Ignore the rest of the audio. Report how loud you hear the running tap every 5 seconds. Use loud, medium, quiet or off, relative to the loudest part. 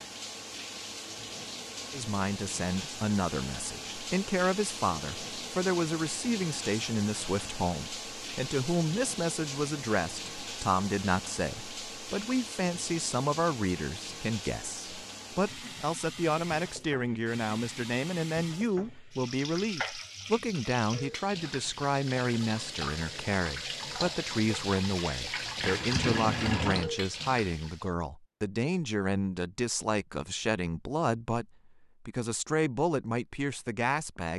medium, medium, medium, medium, medium, loud, off.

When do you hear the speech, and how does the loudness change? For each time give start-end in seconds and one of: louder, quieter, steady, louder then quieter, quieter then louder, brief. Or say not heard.
1.9-34.3 steady.